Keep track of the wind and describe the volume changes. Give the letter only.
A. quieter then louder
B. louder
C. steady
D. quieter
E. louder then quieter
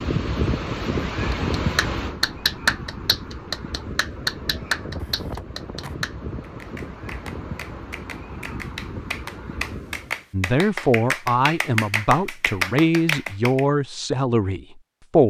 D.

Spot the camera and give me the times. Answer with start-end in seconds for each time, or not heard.
5.0-6.0.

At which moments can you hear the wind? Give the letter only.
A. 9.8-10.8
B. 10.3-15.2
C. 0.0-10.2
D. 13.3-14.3
C.